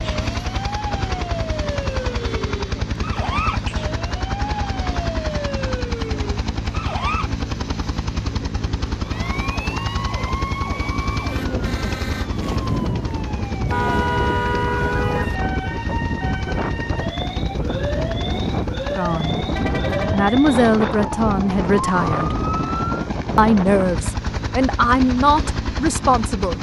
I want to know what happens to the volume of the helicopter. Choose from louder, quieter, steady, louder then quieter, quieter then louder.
steady.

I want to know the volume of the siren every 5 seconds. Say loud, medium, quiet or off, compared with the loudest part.
loud, loud, loud, loud, loud, off.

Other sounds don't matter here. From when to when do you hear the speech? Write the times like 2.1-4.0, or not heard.
18.9-19.4, 20.1-22.4, 23.4-26.5.